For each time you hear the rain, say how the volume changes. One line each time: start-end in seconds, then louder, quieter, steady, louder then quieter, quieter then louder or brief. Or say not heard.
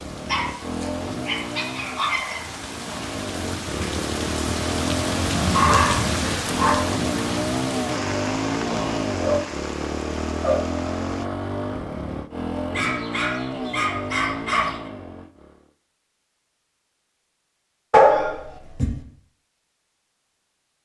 0.0-11.2 louder then quieter.